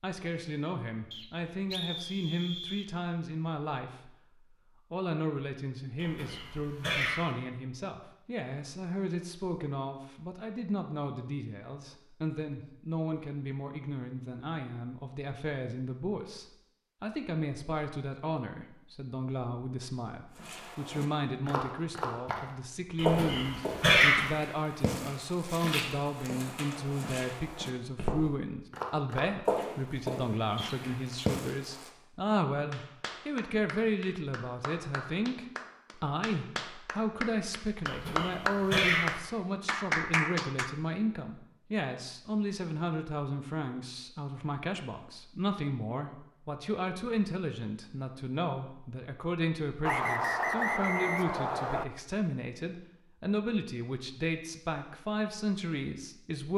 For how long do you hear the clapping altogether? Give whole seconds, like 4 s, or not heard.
8 s.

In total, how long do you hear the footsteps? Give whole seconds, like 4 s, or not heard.
11 s.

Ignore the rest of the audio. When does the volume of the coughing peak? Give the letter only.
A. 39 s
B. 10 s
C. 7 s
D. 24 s
D.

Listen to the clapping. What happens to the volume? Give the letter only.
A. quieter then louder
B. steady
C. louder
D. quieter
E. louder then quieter
C.